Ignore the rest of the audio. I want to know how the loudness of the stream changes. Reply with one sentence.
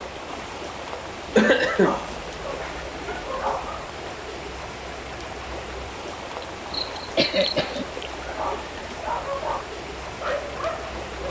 The volume of the stream stays about the same.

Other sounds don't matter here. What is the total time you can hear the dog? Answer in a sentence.
You can hear the dog for 5 seconds altogether.